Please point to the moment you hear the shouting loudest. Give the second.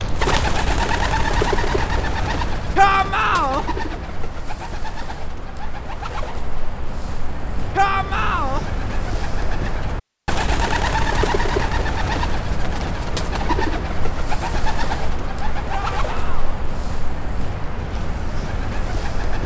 3 s.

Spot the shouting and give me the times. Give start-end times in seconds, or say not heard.
2.8-3.6, 7.8-8.7, 15.7-16.6.